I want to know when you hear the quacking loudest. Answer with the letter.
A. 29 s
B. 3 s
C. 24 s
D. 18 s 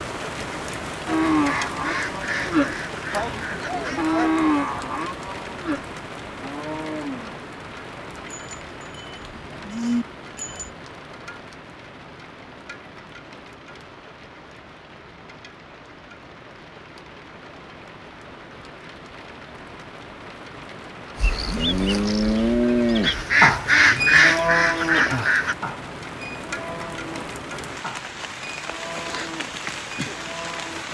C.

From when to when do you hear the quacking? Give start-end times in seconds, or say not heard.
1.4-4.0, 23.0-25.6.